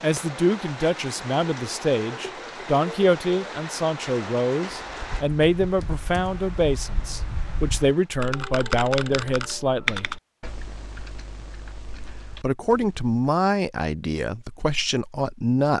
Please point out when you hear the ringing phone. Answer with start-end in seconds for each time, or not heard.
not heard.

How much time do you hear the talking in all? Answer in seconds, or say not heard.
14 s.